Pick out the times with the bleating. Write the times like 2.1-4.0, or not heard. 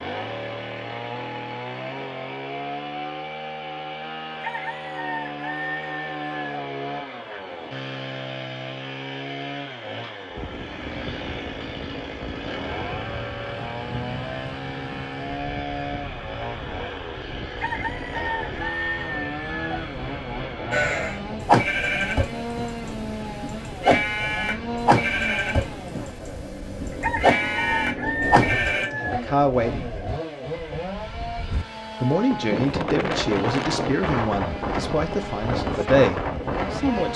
20.7-28.9.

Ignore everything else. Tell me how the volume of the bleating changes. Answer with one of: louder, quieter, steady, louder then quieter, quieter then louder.
quieter then louder.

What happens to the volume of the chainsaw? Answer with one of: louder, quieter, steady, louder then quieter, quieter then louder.
steady.